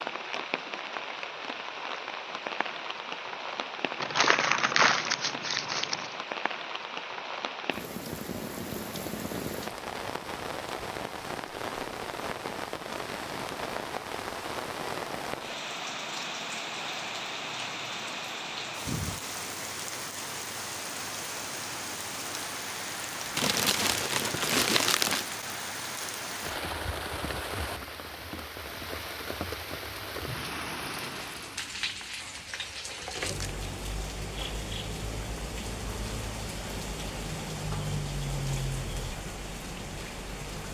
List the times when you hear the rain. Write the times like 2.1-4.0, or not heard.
0.0-40.6.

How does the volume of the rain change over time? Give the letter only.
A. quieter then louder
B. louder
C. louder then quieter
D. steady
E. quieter
D.